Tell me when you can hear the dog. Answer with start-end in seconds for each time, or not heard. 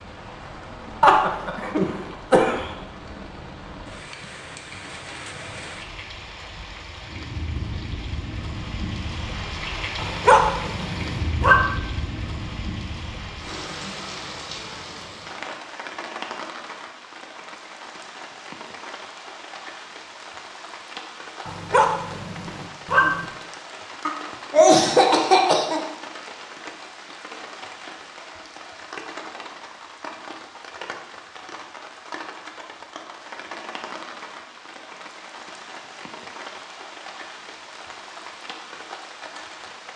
9.9-11.6, 21.4-23.2.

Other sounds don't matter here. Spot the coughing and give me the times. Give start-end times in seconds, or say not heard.
1.0-2.7, 24.1-25.8.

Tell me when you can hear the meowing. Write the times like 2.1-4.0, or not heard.
not heard.